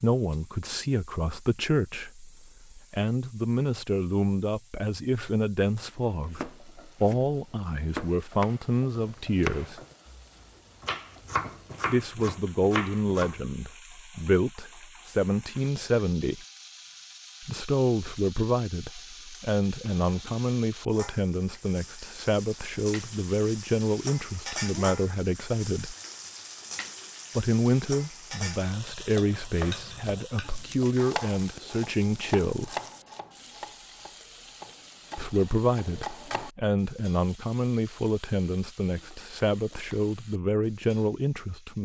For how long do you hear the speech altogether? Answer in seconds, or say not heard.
35 s.